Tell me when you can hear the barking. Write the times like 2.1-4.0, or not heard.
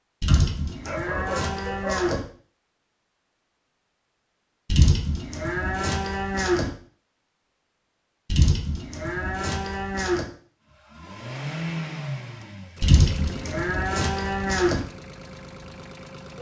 0.2-2.1.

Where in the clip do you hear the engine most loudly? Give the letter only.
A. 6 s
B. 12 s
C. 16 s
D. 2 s
B.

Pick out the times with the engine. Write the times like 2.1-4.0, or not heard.
10.7-16.3.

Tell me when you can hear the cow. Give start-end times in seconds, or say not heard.
0.2-2.2, 4.7-6.7, 8.3-10.2, 12.8-14.8.